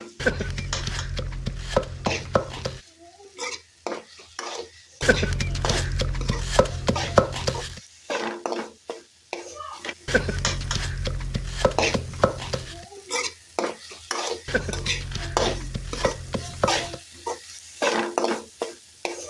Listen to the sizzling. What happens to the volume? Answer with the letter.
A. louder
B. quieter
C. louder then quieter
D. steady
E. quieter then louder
A.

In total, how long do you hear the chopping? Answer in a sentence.
The chopping can be heard for 11 seconds in total.